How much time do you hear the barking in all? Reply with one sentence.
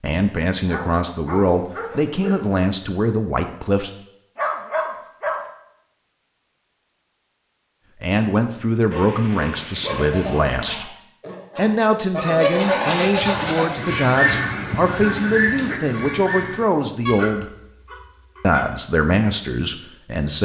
The barking can be heard for 8 seconds in total.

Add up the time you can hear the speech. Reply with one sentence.
You can hear the speech for 15 seconds altogether.